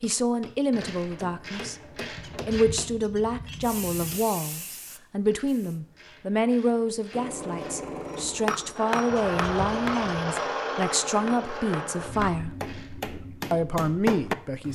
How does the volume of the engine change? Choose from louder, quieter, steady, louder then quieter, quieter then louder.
louder then quieter.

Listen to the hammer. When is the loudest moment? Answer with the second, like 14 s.
14 s.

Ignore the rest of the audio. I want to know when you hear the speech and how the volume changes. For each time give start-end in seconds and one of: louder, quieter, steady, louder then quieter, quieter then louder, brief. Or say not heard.
0.0-12.6 steady
13.5-14.7 brief.